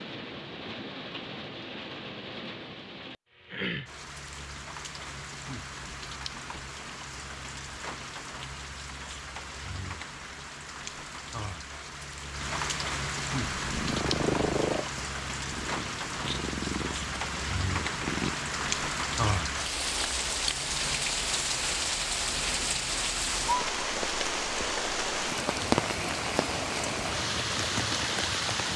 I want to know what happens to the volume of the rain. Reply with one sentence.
The volume of the rain goes up.